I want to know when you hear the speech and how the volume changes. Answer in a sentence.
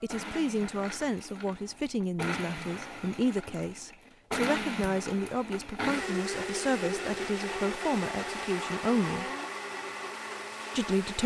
You can hear the speech from 0.0 to 9.2 s, at a steady volume; and briefly from 10.8 to 11.2 s.